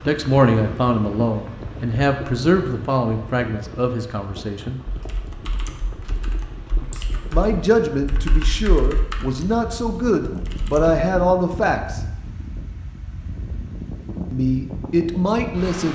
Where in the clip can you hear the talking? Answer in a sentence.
You can hear the talking from 0.0 to 4.8 s, from 7.3 to 12.0 s and from 14.3 to 15.9 s.